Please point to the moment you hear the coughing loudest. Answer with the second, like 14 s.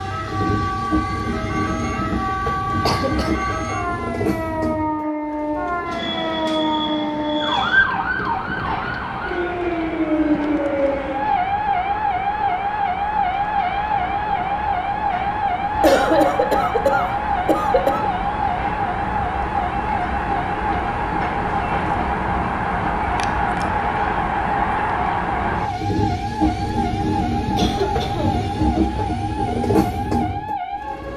16 s.